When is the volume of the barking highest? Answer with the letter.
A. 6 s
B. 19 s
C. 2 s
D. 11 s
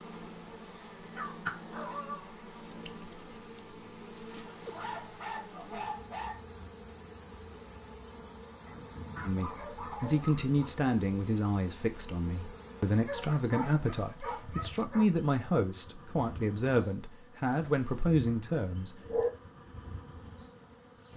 B.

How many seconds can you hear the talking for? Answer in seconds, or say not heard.
10 s.